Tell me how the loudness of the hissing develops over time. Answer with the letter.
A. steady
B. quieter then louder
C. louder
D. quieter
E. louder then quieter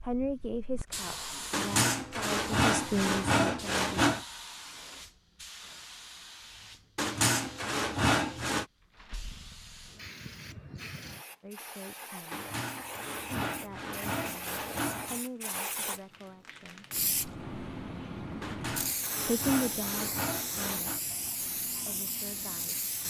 B.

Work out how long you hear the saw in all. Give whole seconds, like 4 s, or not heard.
10 s.